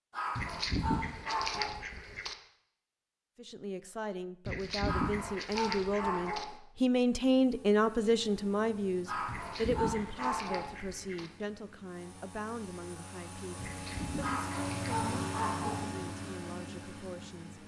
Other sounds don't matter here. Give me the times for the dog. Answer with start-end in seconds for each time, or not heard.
0.1-1.9, 4.8-6.5, 9.1-10.8, 14.2-15.9.